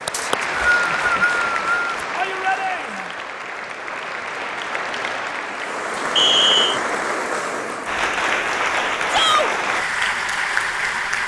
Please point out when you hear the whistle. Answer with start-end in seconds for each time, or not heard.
0.1-1.9, 6.2-6.8.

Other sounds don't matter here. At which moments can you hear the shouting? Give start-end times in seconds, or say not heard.
2.1-3.1, 9.1-9.5.